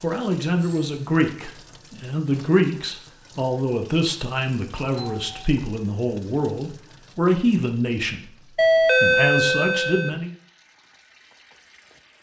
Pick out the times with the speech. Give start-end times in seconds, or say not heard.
0.0-10.3.